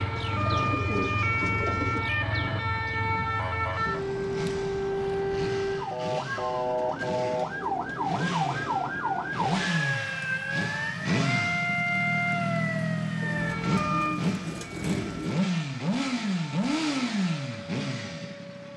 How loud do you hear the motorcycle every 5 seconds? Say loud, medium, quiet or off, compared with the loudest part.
medium, medium, loud, loud.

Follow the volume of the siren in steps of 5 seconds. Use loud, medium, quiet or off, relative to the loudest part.
loud, loud, loud, quiet.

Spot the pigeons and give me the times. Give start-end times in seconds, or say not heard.
0.1-2.0, 6.8-8.9, 13.2-15.4.